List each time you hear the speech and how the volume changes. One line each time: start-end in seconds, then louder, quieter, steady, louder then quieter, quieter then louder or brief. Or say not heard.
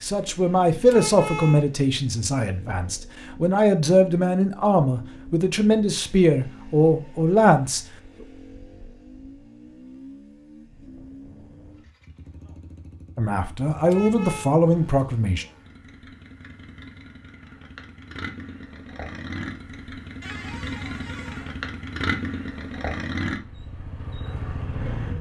0.0-7.8 quieter then louder
13.2-15.4 brief.